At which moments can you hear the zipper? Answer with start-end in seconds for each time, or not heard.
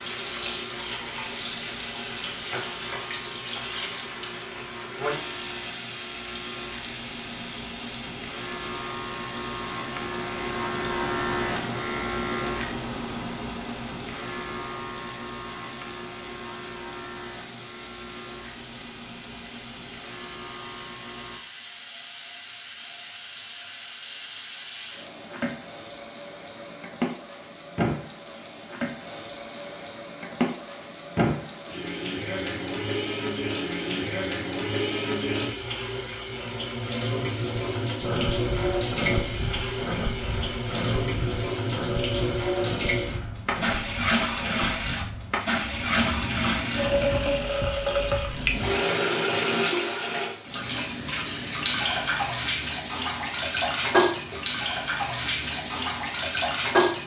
not heard.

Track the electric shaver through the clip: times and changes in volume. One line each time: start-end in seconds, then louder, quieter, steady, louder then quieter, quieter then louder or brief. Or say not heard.
0.0-21.4 louder then quieter.